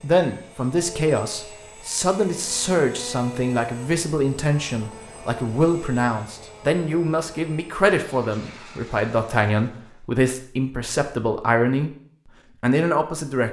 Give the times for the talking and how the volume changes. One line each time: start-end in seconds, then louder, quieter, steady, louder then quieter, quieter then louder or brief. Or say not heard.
0.0-11.9 steady
12.6-13.4 brief.